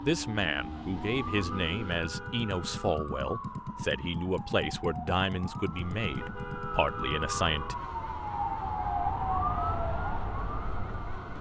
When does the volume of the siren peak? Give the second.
9 s.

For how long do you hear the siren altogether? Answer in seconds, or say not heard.
11 s.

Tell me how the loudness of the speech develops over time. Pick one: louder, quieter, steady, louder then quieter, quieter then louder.
steady.